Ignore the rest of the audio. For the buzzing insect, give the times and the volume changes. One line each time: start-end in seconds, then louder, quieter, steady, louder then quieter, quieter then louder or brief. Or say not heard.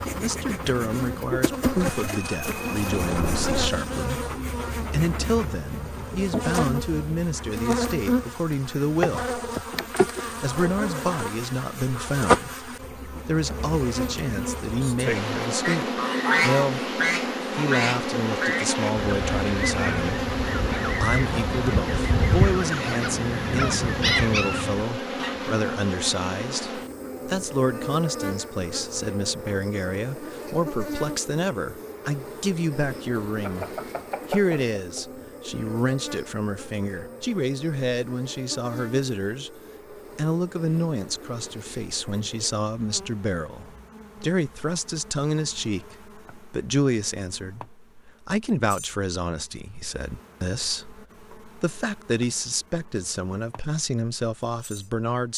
0.0-55.1 quieter.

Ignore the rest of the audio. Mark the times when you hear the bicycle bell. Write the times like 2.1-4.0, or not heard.
1.8-3.7, 33.4-35.0.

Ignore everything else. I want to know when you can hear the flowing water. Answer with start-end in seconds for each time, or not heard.
not heard.